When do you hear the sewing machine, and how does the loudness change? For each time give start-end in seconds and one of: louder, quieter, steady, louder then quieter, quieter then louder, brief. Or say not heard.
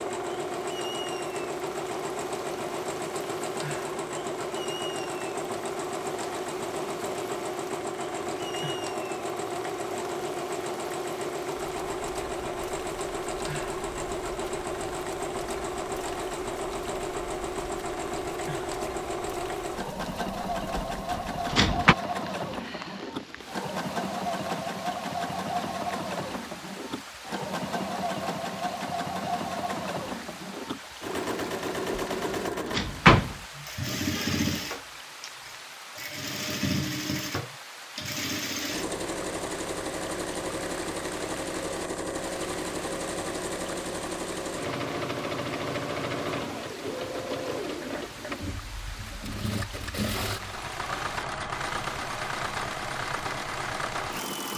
0.0-54.5 steady.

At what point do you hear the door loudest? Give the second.
33 s.